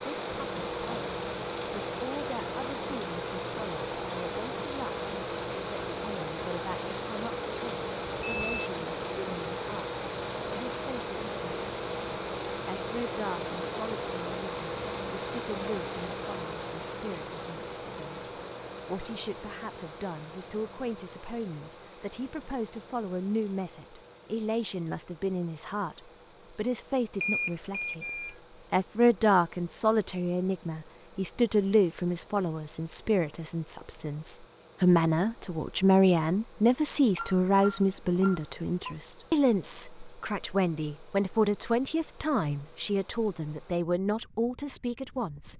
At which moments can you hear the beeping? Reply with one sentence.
The beeping can be heard from 8.2 to 8.7 s, from 27.2 to 28.4 s and from 37.1 to 39.0 s.